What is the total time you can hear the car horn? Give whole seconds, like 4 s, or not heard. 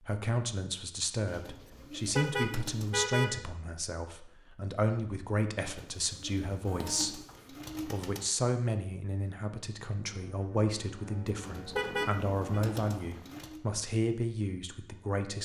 3 s.